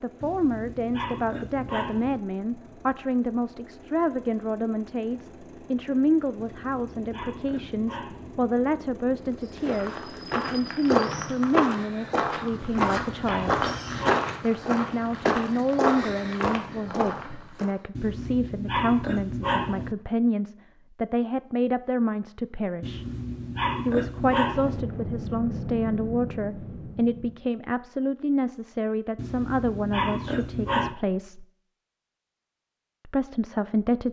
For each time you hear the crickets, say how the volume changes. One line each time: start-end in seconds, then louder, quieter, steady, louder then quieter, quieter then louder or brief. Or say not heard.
not heard.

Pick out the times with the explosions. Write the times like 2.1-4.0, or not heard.
24.5-27.4.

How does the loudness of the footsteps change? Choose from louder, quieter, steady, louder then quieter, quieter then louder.
steady.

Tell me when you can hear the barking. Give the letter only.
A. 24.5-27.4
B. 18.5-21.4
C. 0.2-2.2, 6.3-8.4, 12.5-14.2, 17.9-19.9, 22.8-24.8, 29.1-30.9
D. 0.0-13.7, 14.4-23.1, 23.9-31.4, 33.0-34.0
C.